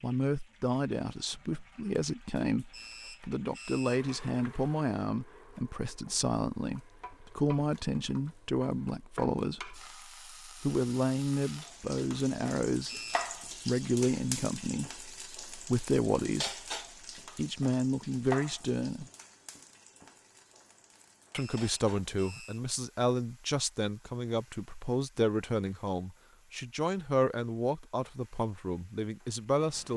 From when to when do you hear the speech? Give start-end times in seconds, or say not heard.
0.0-9.8, 10.4-13.0, 13.7-16.5, 17.4-19.1, 21.3-29.9.